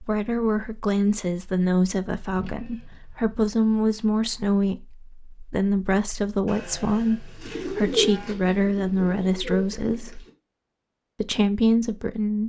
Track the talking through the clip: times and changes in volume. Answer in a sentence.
The talking can be heard from 0.0 to 10.2 s, at a steady volume; and briefly from 11.2 to 12.4 s.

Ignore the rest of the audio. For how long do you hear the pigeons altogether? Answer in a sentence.
The pigeons can be heard for 3 seconds in total.